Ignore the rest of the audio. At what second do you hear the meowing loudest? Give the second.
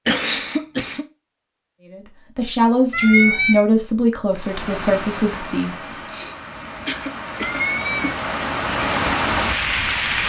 3 s.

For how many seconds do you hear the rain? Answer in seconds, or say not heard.
6 s.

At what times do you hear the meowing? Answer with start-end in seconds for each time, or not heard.
2.9-3.6, 7.3-8.2.